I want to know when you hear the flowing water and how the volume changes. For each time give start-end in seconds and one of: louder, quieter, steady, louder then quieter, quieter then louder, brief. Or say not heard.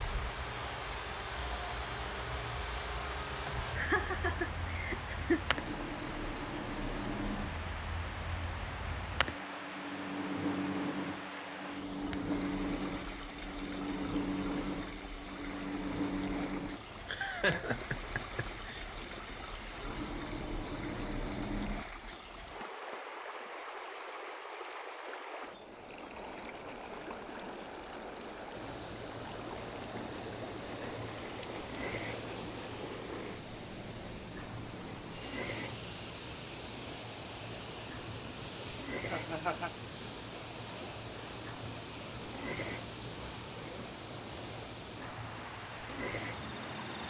0.0-47.0 steady.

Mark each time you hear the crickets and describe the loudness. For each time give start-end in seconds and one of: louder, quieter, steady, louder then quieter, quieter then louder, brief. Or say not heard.
0.0-47.0 steady.